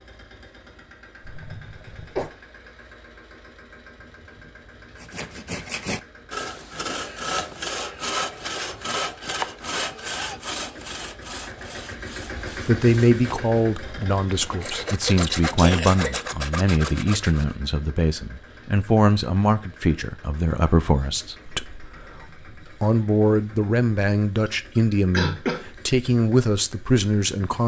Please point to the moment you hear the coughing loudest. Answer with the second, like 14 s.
25 s.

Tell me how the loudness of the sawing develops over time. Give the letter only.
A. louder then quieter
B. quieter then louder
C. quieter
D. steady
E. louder
B.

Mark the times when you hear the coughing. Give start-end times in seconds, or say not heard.
1.2-2.3, 15.6-16.1, 24.4-25.6.